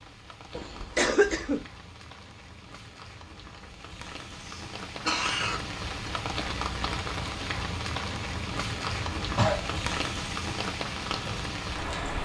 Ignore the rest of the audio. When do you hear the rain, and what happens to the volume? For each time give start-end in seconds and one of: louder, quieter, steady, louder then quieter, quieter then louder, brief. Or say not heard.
0.0-12.2 louder.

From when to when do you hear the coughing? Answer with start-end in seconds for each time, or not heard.
0.6-1.6, 4.4-6.1, 9.3-9.8.